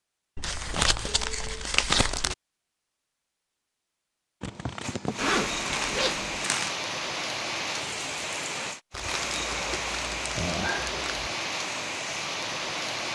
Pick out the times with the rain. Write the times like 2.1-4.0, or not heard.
4.8-13.1.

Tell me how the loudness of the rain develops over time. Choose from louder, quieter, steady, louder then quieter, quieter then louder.
steady.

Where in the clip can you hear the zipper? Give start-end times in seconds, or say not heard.
5.2-6.3.